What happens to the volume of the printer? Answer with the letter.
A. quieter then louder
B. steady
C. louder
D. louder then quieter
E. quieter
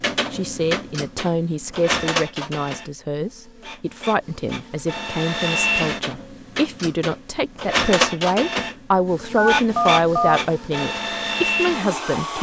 A.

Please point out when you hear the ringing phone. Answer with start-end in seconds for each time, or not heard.
9.3-10.4.